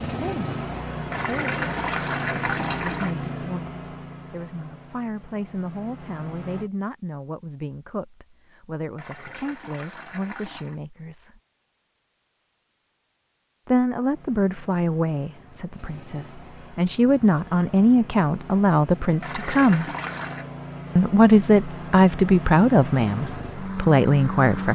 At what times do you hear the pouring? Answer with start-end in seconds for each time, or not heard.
1.1-3.1, 8.9-10.8, 19.2-20.5.